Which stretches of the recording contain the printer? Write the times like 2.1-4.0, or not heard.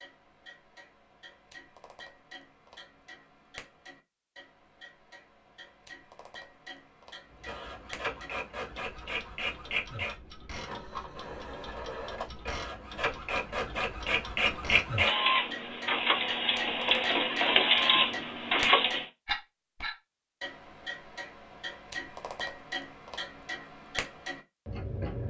7.3-19.1.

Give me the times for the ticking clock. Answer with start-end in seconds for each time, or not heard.
0.0-25.2.